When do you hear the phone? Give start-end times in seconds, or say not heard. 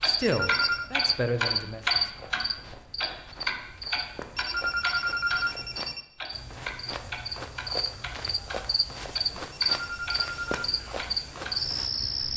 0.2-0.8, 4.3-6.0, 9.7-10.7.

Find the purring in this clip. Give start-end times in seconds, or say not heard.
not heard.